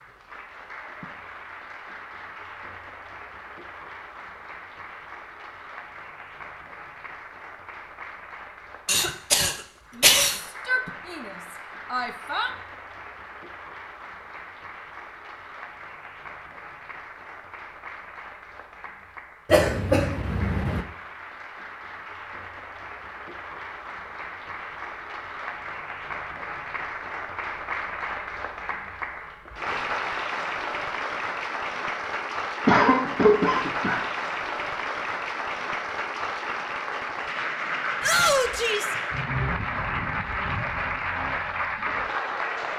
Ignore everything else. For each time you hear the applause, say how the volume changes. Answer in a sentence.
The applause can be heard from 0.0 to 42.7 s, getting louder.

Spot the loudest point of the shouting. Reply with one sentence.
The volume of the shouting peaks at 38 seconds.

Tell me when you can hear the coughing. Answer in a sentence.
You can hear the coughing from 8.8 to 10.4 s, from 19.5 to 20.9 s and from 32.6 to 34.0 s.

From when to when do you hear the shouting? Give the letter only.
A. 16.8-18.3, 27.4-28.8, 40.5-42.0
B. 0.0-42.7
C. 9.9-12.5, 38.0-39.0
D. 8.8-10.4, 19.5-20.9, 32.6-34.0
C.